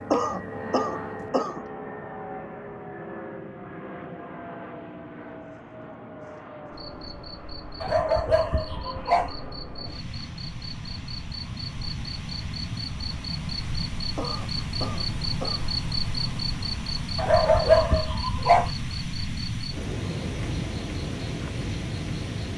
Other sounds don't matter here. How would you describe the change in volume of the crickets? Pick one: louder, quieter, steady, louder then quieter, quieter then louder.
louder.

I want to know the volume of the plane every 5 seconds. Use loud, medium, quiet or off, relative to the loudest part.
loud, medium, loud, loud, loud.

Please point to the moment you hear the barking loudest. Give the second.
18 s.